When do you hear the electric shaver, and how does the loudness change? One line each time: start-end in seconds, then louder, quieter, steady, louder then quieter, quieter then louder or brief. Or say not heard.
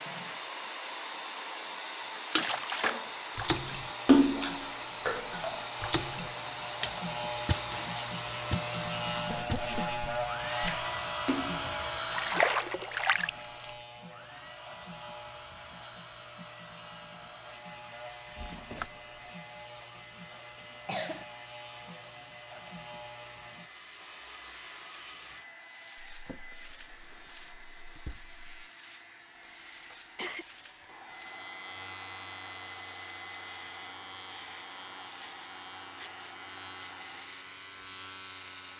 3.8-38.7 quieter.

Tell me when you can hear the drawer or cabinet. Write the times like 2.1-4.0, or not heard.
2.4-3.8, 18.4-19.0, 26.1-28.4.